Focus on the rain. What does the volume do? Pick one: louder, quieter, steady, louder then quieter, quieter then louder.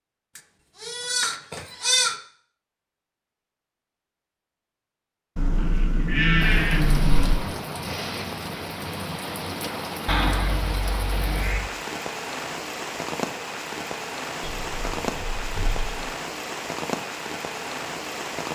steady.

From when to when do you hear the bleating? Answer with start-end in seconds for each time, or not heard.
0.3-2.1, 5.3-7.3, 10.1-11.7, 14.4-16.1.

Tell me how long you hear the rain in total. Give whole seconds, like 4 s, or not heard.
12 s.